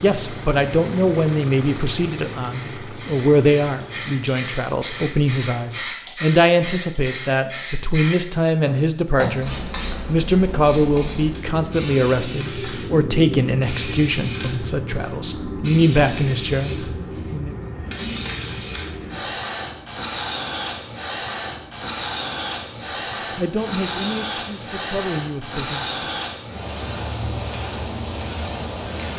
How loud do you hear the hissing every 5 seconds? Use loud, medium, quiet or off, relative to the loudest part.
medium, loud, loud, loud, loud, loud.